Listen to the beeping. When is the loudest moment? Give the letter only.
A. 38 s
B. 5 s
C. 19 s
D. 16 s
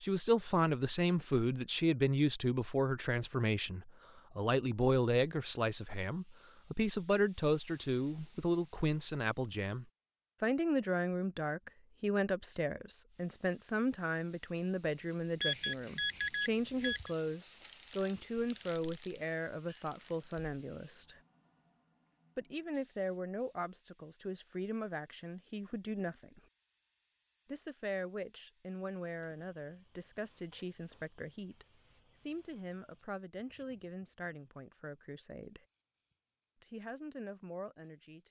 D.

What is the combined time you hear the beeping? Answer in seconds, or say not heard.
2 s.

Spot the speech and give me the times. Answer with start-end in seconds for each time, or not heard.
0.0-21.2, 22.4-26.4, 27.4-35.6, 36.6-38.2.